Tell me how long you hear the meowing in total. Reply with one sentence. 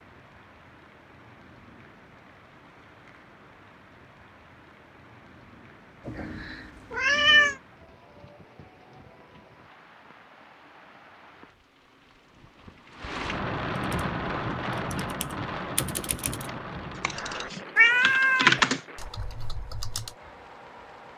The meowing can be heard for 2 seconds in total.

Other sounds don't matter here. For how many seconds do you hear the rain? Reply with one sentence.
You can hear the rain for 21 seconds altogether.